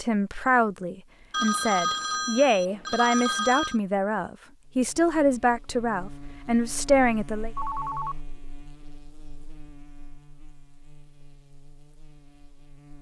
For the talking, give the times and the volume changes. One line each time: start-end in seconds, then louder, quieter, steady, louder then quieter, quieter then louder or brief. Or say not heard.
0.0-7.5 steady.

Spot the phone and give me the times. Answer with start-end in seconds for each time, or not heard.
1.3-3.8, 7.5-8.2.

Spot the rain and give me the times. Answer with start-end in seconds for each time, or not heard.
not heard.